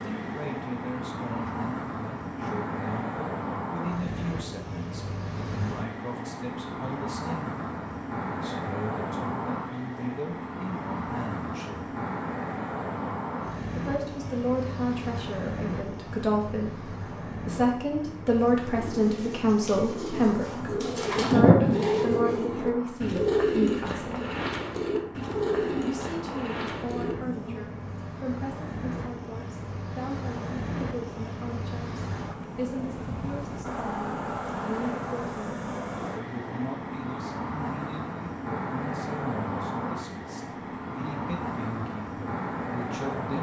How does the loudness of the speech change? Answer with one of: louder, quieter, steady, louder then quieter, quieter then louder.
louder then quieter.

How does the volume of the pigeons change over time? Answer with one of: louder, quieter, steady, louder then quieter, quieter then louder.
louder then quieter.